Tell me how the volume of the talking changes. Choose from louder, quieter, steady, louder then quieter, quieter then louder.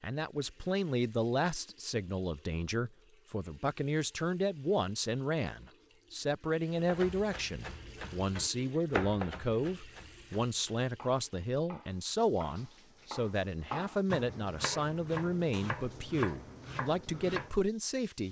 steady.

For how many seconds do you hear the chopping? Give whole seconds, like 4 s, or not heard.
11 s.